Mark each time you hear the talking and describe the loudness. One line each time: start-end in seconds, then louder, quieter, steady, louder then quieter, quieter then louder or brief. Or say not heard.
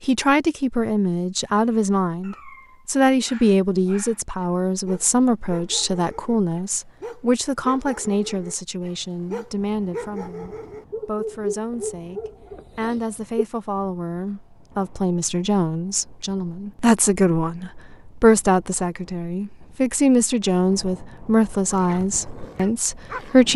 0.0-23.5 quieter then louder.